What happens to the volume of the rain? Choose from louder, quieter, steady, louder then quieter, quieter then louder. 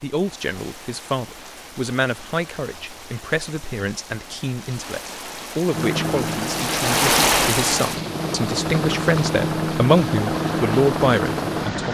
louder then quieter.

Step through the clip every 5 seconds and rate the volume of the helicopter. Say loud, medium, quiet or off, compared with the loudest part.
off, loud, loud.